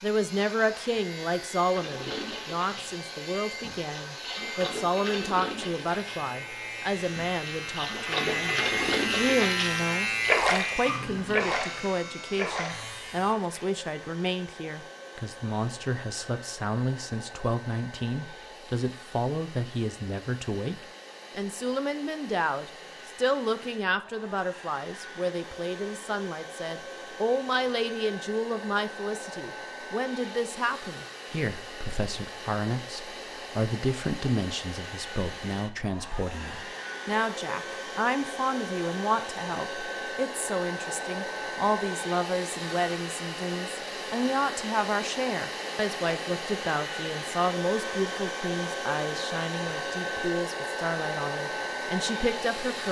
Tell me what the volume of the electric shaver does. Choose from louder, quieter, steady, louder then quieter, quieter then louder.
louder then quieter.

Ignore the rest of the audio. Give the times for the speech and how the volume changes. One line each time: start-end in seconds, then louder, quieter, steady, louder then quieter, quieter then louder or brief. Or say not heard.
0.0-52.8 steady.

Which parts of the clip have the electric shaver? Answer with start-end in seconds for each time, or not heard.
0.0-13.3.